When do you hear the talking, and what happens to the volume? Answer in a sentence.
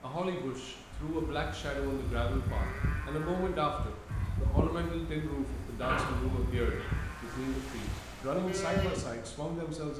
You can hear the talking from 0.0 to 9.9 s, at a steady volume.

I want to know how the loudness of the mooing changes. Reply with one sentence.
The volume of the mooing stays about the same.